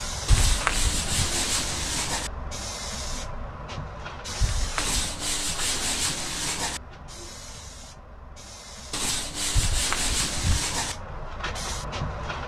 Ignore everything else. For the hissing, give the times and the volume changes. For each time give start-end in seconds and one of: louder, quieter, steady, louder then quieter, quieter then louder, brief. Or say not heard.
0.0-12.4 quieter then louder.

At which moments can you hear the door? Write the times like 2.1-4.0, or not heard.
0.3-1.3, 4.4-5.0, 9.6-10.6.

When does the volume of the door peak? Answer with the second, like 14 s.
1 s.